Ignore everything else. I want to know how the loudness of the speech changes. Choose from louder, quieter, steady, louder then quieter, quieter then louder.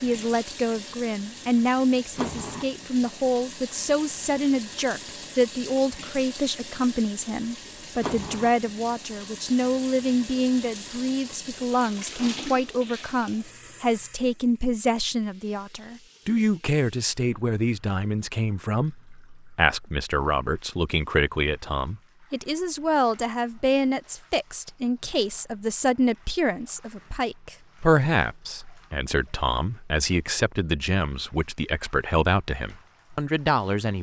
steady.